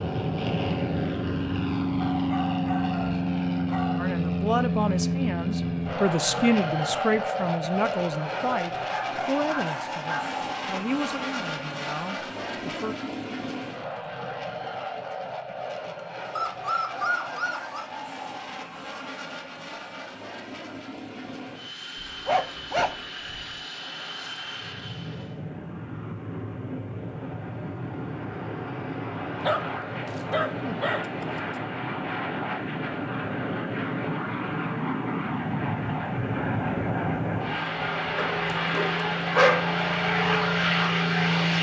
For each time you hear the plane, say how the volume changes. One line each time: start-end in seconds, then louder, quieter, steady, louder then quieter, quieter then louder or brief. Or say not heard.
0.0-41.5 quieter then louder.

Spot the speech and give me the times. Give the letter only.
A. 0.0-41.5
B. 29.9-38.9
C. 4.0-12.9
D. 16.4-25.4
C.